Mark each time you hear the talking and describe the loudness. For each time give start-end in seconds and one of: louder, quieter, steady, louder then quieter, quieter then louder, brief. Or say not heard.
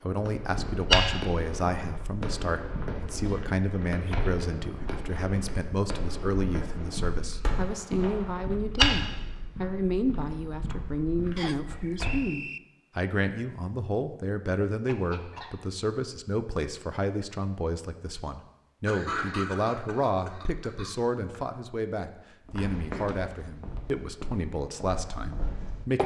0.0-26.0 steady.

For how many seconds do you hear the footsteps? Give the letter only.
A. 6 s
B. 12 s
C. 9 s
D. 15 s
D.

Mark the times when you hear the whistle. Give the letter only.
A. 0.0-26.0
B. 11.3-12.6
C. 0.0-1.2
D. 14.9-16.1
B.